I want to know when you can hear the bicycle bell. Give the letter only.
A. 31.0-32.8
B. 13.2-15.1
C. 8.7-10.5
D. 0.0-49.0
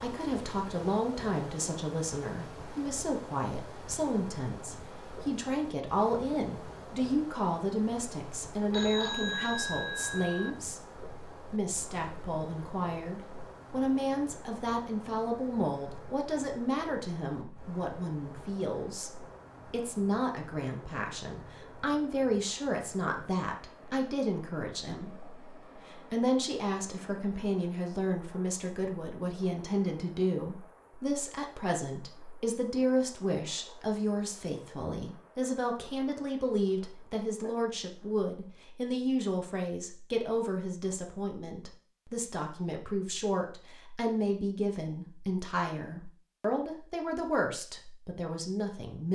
C.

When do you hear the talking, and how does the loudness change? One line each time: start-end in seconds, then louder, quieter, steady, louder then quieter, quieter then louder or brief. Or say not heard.
0.0-49.0 steady.